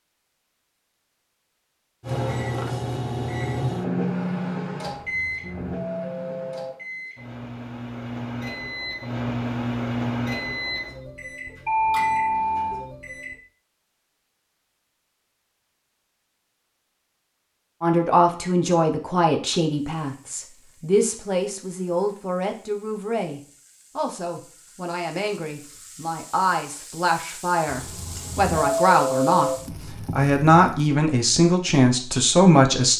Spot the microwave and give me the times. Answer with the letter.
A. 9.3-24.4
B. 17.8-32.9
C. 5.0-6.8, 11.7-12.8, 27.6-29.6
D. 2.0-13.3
D.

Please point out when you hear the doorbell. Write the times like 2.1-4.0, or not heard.
5.0-6.8, 11.7-12.8, 27.6-29.6.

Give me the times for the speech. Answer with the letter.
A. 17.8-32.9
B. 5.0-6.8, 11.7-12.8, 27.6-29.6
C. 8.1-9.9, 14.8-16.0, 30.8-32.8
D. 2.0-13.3
A.